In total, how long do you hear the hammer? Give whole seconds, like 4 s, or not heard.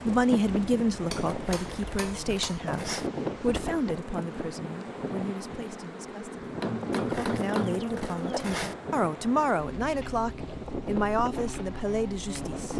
3 s.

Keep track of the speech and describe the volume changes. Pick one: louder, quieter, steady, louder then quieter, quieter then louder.
quieter then louder.